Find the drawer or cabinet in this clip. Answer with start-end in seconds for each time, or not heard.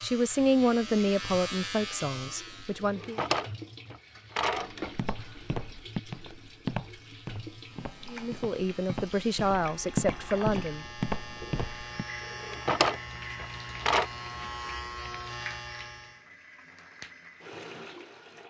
2.8-5.0, 12.3-14.1.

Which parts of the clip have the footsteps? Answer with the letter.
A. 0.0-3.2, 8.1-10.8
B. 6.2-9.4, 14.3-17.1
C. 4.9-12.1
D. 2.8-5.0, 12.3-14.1
C.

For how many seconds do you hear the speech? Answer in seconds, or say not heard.
6 s.